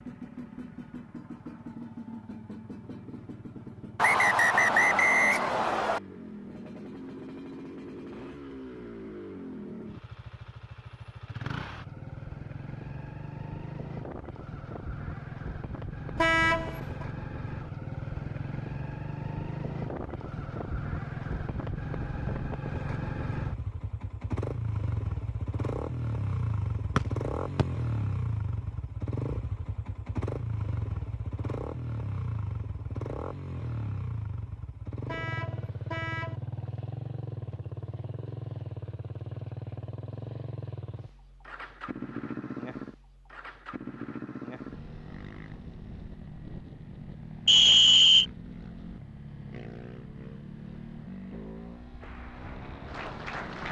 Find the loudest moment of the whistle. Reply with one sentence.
The volume of the whistle peaks at 48 seconds.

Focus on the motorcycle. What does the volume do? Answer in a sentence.
The volume of the motorcycle goes up, then down.